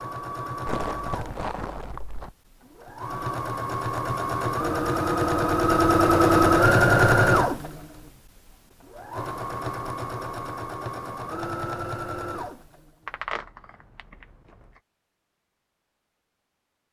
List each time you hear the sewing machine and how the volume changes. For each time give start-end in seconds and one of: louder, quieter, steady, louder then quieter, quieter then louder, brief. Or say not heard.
0.0-13.1 louder then quieter.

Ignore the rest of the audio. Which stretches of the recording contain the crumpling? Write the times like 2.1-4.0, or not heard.
0.7-2.3, 13.1-14.2.